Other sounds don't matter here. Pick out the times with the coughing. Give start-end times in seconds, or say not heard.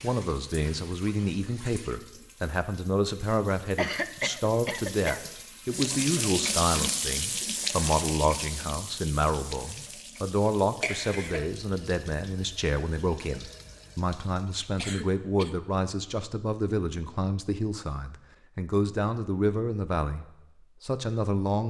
3.8-5.3, 10.8-11.5, 14.8-15.6.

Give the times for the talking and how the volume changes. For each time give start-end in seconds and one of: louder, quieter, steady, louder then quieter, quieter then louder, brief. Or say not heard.
0.0-21.6 steady.